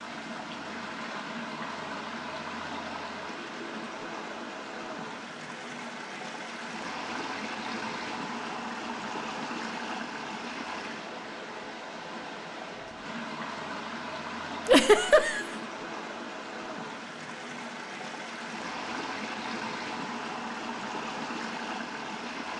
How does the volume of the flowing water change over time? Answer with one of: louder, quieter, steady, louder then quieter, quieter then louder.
steady.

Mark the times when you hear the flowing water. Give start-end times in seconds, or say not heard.
0.0-22.5.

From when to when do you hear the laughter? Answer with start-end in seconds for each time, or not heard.
14.7-15.4.